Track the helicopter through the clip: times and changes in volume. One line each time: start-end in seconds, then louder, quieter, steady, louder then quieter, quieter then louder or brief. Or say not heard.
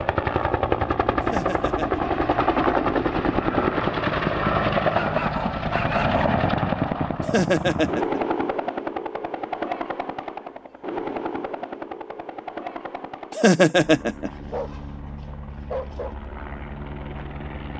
0.0-17.7 quieter.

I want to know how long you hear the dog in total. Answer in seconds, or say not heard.
3 s.